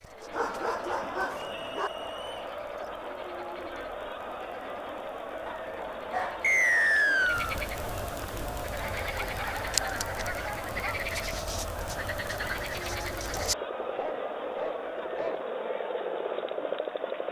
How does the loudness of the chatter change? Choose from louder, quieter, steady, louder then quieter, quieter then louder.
steady.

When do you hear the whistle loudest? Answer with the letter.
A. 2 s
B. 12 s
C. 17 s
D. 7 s
D.